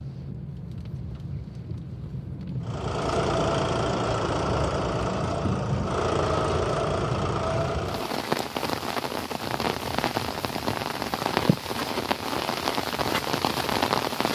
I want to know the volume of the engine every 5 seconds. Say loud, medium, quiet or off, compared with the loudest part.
loud, loud, off.